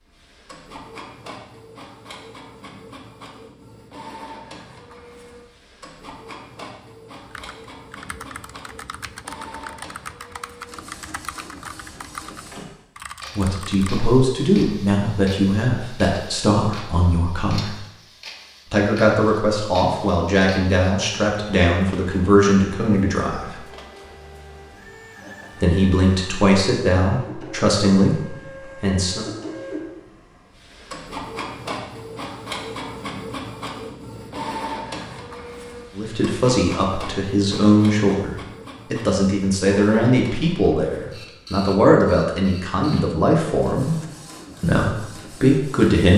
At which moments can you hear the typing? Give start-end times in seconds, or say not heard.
7.2-13.9.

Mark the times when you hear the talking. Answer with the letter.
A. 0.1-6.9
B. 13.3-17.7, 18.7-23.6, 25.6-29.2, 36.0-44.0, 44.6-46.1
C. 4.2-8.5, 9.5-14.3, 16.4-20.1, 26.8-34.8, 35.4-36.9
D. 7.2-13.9
B.